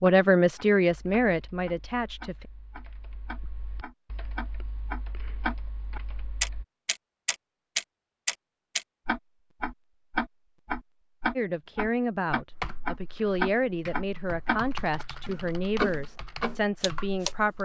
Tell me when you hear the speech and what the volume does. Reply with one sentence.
You can hear the speech briefly from 0.0 to 2.5 s; and from 11.3 to 17.6 s, at a steady volume.